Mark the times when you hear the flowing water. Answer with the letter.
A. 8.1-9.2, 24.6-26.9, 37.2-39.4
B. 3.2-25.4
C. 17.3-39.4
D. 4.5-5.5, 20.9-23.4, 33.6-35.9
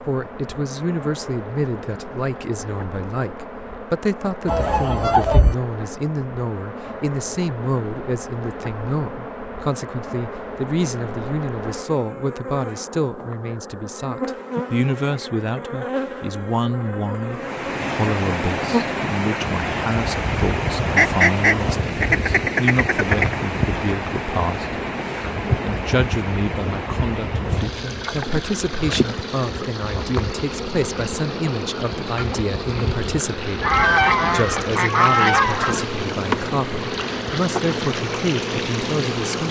C.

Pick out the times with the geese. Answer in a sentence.
You can hear the geese from 4.5 to 5.5 s, from 20.9 to 23.4 s and from 33.6 to 35.9 s.